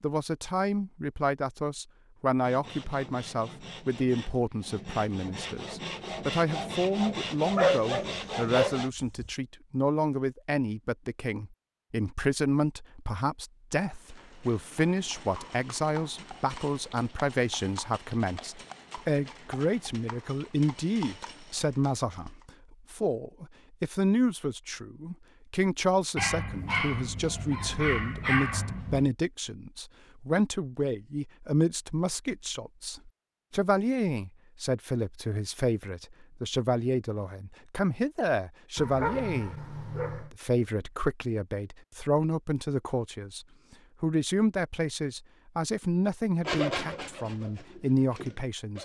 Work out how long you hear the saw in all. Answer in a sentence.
You can hear the saw for 9 seconds altogether.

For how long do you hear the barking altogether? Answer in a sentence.
You can hear the barking for 6 seconds altogether.